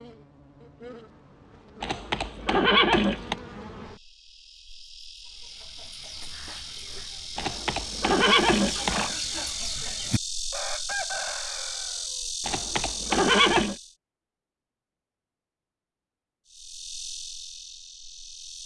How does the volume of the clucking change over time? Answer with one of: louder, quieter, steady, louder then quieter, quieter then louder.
louder.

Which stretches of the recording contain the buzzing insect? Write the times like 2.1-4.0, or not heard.
0.0-13.9, 16.4-18.6.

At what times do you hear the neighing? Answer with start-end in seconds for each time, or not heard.
1.8-3.4, 7.3-9.1, 12.4-13.8.